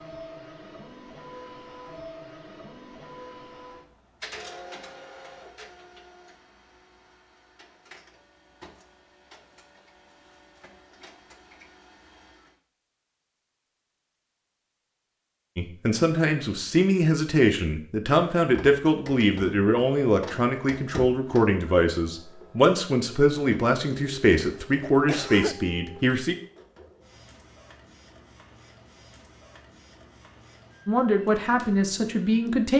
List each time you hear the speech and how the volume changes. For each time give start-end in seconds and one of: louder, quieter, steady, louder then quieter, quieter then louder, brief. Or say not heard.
15.6-26.4 steady
30.9-32.7 brief.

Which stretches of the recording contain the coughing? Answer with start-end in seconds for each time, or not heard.
24.4-25.6.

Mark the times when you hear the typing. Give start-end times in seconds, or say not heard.
not heard.